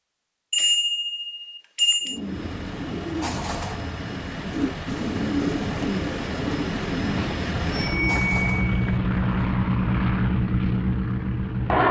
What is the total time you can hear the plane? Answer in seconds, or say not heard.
10 s.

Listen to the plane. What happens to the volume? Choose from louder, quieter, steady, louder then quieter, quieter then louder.
louder.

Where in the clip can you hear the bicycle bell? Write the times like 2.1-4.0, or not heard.
0.5-2.2, 7.2-9.0.